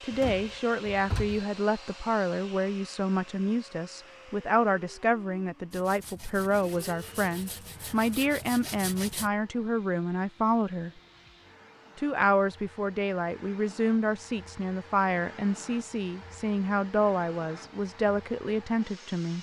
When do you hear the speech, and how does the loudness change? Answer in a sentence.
The speech can be heard from 0.0 to 10.9 s, at a steady volume; and from 11.9 to 19.3 s, at a steady volume.